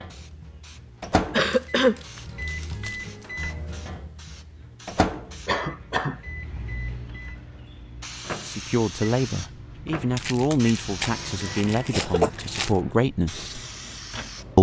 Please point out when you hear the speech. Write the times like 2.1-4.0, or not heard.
8.4-13.6.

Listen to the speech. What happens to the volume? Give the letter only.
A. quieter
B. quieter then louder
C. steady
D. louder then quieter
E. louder
C.